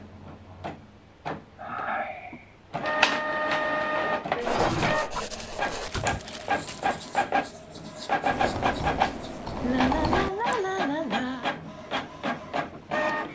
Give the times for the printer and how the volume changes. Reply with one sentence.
The printer can be heard from 0.0 to 13.3 s, getting louder then quieter.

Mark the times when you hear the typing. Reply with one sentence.
You can hear the typing from 8.3 to 10.6 s.